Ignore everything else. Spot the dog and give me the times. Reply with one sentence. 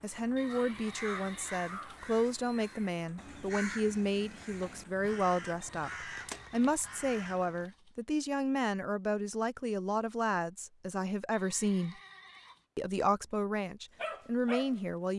You can hear the dog from 13.9 to 15.1 s.